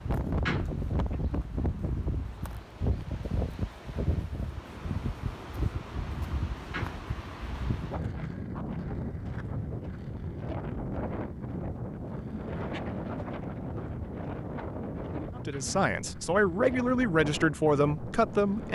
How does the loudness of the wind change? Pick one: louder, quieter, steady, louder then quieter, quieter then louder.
steady.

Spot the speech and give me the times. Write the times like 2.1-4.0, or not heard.
15.3-18.7.